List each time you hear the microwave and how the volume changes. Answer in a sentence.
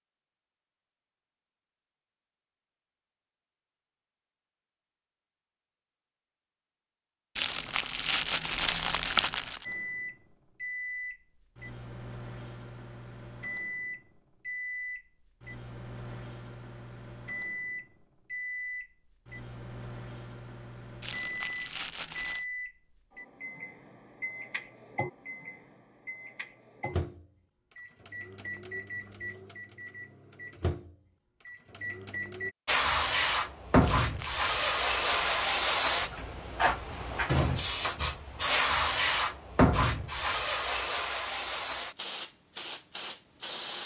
The microwave can be heard from 9.6 to 32.5 s, at a steady volume.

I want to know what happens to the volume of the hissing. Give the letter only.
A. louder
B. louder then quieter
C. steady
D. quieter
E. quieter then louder
D.